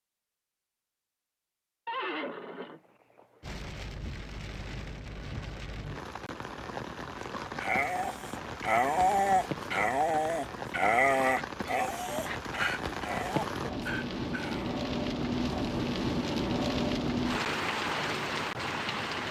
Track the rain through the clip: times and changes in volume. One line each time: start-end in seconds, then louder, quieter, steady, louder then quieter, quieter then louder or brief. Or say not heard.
3.4-19.2 louder.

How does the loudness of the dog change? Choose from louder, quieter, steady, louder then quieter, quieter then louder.
quieter.